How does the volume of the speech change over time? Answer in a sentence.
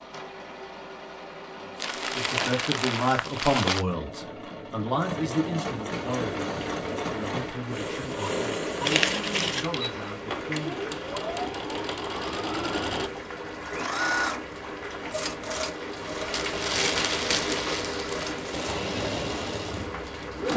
The loudness of the speech goes down.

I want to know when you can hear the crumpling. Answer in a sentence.
You can hear the crumpling from 1.8 to 3.9 s, from 8.8 to 9.7 s and from 16.3 to 18.8 s.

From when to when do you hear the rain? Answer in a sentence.
The rain can be heard from 5.9 to 20.5 s.